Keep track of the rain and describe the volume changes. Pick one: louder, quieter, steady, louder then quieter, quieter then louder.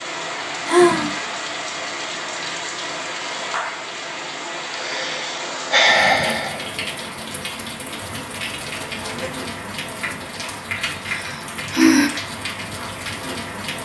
steady.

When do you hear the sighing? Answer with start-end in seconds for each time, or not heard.
0.7-1.2, 4.7-6.7, 11.1-12.1.